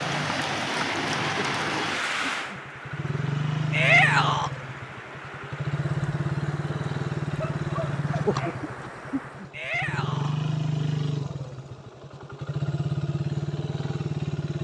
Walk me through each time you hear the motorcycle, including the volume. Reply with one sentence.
You can hear the motorcycle from 0.0 to 14.5 s, getting louder.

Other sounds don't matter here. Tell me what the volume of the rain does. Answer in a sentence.
The volume of the rain goes down.